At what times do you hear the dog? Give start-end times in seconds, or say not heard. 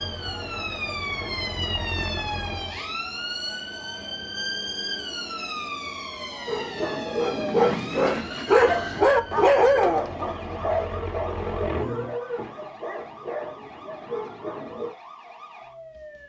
6.5-14.9.